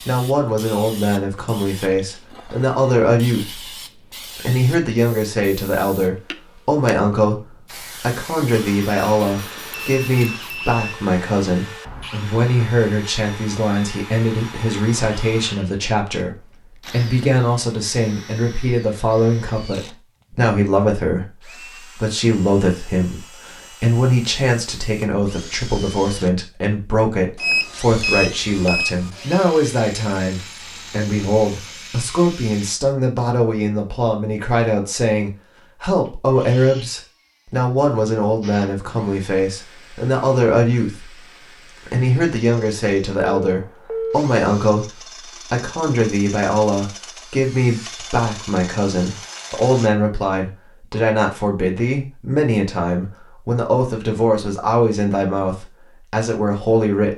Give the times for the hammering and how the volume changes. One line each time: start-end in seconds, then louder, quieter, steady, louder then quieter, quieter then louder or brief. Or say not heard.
not heard.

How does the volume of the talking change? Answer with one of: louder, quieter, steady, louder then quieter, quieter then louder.
steady.